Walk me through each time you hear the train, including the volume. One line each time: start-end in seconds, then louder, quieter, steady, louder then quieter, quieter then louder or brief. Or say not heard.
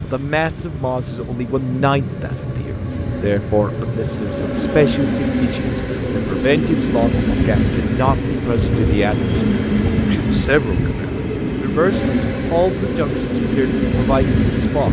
0.0-14.8 louder.